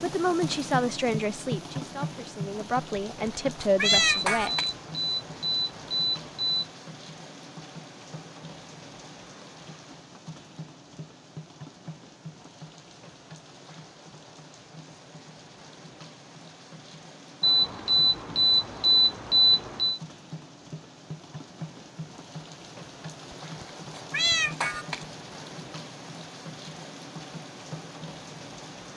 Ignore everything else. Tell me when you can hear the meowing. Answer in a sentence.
The meowing can be heard from 3.2 to 4.7 s and from 23.6 to 25.1 s.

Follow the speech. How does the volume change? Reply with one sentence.
The loudness of the speech goes down, then up.